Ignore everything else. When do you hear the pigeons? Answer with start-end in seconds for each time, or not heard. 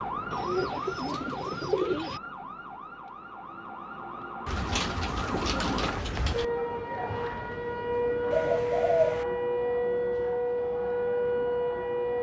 0.3-2.2, 4.5-6.5, 8.3-9.2.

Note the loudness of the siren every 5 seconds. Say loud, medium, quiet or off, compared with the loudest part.
medium, loud, loud.